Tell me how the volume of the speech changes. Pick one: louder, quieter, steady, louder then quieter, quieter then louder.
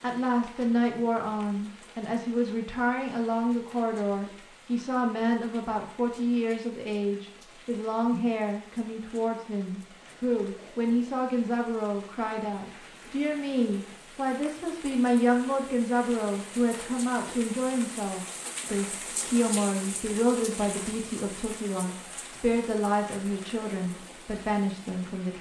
steady.